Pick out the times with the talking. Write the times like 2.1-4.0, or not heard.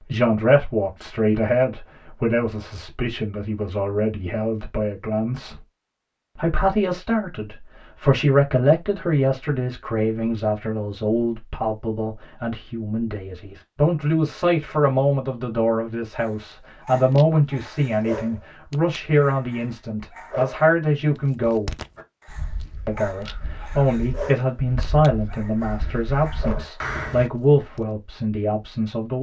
0.1-5.6, 6.3-21.8, 22.9-29.1.